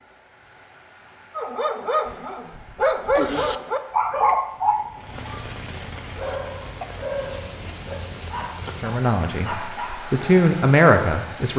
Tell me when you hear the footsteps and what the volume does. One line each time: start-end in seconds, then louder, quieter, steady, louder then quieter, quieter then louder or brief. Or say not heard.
not heard.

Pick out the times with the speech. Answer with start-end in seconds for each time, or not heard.
8.8-11.5.